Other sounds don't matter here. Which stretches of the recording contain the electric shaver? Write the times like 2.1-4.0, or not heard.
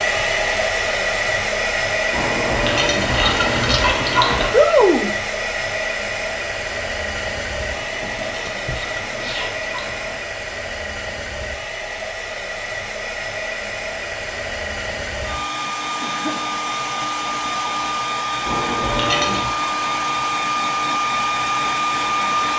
not heard.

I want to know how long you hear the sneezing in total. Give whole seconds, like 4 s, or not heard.
3 s.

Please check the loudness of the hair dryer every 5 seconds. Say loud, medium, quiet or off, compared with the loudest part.
loud, medium, medium, loud, loud.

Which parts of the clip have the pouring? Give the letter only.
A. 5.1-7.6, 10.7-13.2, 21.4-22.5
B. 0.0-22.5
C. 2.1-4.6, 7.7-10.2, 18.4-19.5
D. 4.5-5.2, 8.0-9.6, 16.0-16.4
C.